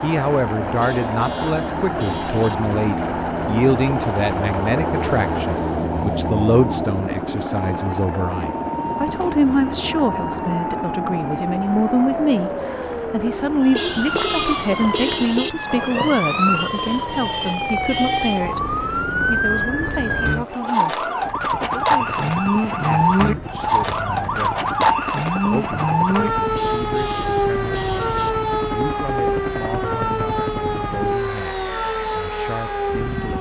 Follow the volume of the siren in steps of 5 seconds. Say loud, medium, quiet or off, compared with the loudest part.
medium, medium, medium, loud, loud, loud, medium.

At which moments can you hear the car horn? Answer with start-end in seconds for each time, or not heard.
0.8-2.6, 13.7-15.5, 26.5-28.3.